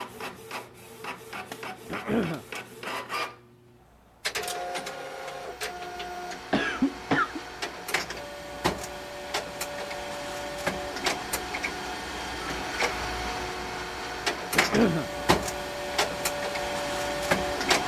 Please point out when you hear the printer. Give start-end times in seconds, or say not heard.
0.0-17.8.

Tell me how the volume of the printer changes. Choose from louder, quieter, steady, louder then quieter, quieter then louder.
louder.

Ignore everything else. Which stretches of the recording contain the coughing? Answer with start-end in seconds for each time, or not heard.
1.9-2.5, 6.5-7.4, 14.6-15.1.